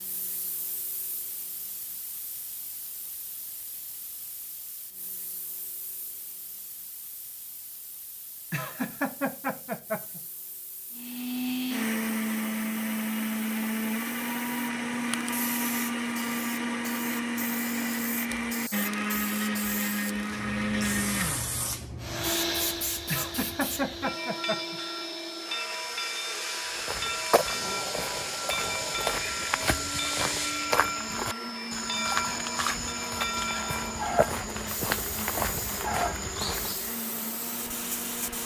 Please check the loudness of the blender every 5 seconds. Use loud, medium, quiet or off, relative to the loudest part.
off, off, loud, loud, loud, medium, medium, medium.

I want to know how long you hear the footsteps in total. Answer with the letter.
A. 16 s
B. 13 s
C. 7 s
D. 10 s
D.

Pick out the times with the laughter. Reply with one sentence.
The laughter can be heard from 8.5 to 10.2 s and from 23.1 to 24.8 s.